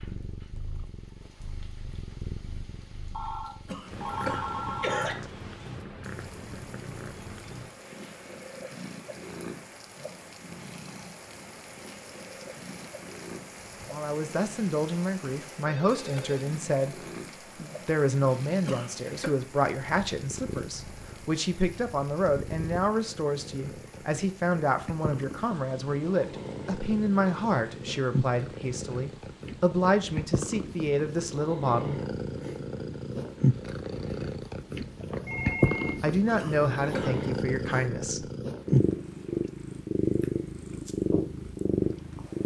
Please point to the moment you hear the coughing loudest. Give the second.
5 s.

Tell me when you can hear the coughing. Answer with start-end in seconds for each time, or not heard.
3.6-5.2, 18.6-19.3, 36.4-37.2.